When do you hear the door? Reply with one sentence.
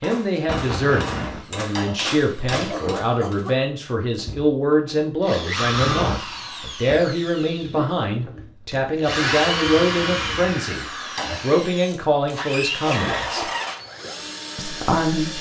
The door can be heard from 1.6 to 2.9 s and from 11.0 to 11.4 s.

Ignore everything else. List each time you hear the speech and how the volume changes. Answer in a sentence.
You can hear the speech from 0.0 to 13.4 s, at a steady volume; and briefly from 14.6 to 15.3 s.